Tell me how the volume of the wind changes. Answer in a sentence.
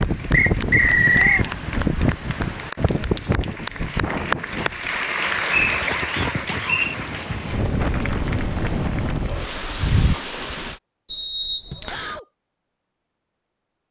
The loudness of the wind goes down, then up.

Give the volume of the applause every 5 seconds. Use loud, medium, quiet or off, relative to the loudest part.
loud, loud, off.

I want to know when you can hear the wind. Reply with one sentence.
The wind can be heard from 0.0 to 10.8 s.